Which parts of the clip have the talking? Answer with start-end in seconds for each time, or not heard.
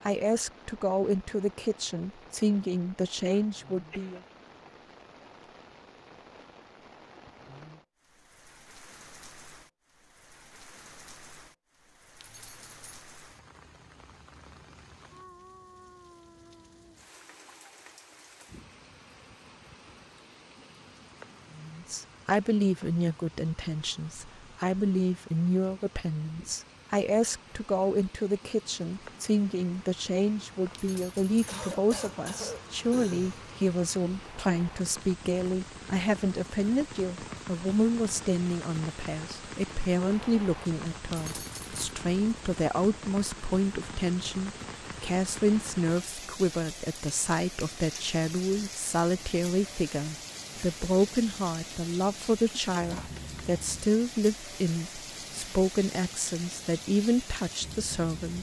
0.1-4.2, 21.6-58.3.